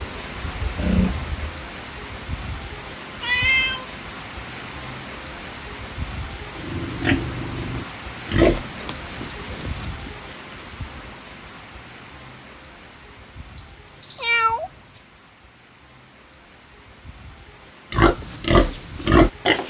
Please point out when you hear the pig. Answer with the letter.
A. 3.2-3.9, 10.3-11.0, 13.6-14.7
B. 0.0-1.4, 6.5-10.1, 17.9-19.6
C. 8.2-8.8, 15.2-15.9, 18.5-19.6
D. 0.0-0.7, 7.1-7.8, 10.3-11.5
B.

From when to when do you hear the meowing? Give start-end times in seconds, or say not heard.
3.2-3.9, 10.3-11.0, 13.6-14.7.